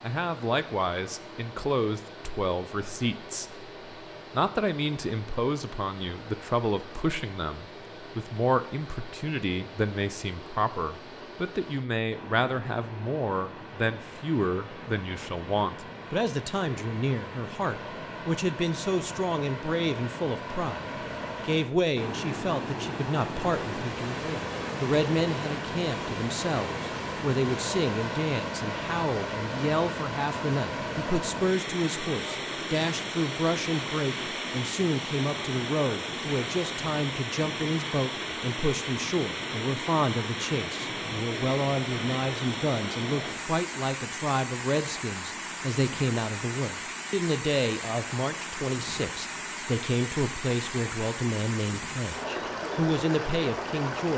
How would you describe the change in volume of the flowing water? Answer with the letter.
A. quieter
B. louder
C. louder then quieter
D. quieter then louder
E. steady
B.